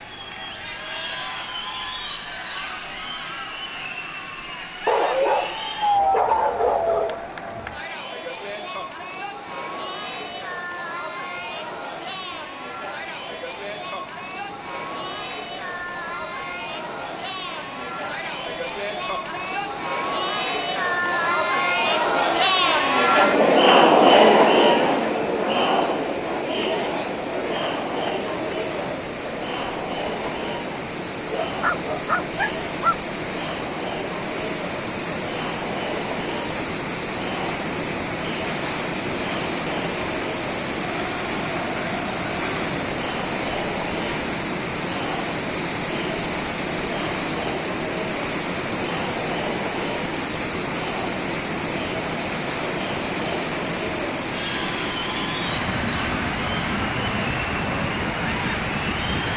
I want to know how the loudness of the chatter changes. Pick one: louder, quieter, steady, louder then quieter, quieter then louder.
louder then quieter.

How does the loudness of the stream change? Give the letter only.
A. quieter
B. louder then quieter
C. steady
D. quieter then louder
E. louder
E.